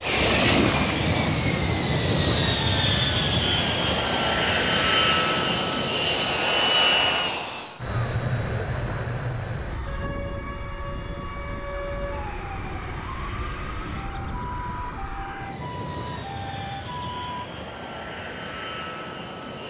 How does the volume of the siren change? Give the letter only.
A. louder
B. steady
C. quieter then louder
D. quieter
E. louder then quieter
B.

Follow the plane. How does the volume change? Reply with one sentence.
The volume of the plane goes down.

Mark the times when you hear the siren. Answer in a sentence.
The siren can be heard from 9.8 to 17.2 s.